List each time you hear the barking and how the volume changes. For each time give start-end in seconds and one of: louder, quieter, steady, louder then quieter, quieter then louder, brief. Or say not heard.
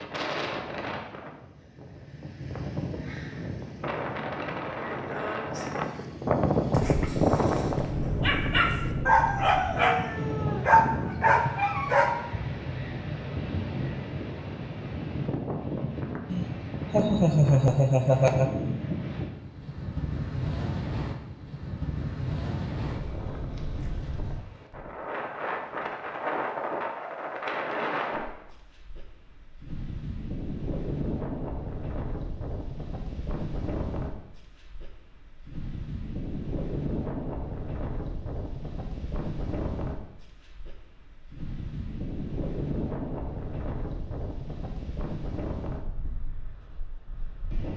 6.7-12.2 louder.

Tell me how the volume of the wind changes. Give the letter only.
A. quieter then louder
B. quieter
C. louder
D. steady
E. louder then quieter
B.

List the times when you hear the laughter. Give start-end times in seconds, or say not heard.
16.3-18.6.